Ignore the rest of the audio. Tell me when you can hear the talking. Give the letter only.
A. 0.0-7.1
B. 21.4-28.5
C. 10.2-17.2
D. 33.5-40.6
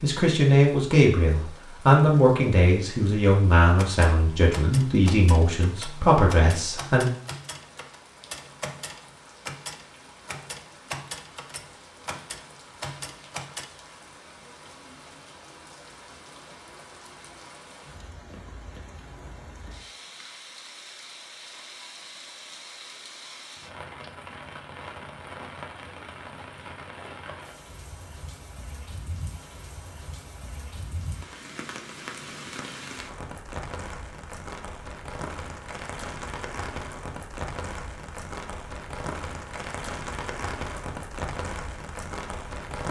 A.